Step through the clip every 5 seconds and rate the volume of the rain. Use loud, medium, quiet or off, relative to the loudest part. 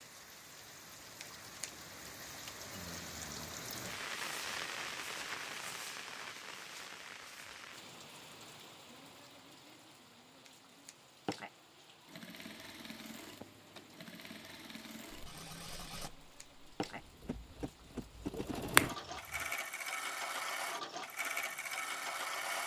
loud, loud, quiet, quiet, quiet.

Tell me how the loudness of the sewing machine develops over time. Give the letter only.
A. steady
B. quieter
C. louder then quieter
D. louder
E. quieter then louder
D.